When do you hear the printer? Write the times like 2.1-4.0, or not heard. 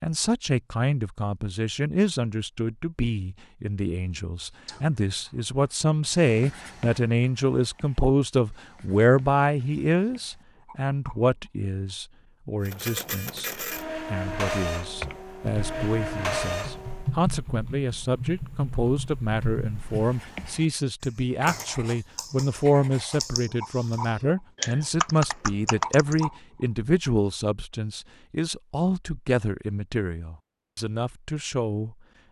12.7-17.1.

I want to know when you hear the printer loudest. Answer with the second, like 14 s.
16 s.